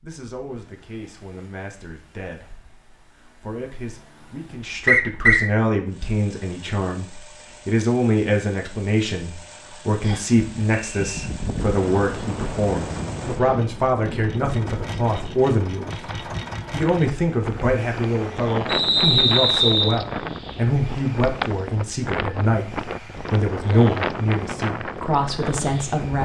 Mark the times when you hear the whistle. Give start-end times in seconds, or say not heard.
4.8-5.5, 10.0-11.3, 18.6-20.0.